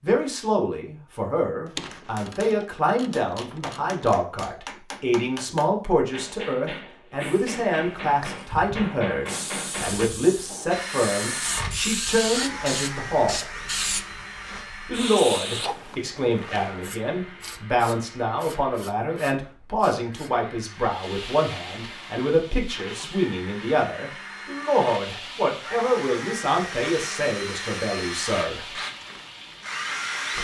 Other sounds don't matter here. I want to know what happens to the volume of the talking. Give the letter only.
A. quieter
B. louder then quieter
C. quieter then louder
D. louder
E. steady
E.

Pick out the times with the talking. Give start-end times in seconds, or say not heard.
0.0-13.4, 14.8-28.8.